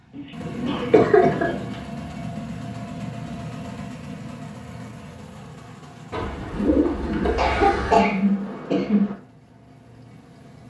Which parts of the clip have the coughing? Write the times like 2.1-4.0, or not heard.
0.1-1.6, 7.3-9.2.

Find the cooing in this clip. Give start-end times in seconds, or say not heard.
0.4-1.8, 6.1-8.1.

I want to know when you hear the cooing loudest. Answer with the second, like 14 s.
7 s.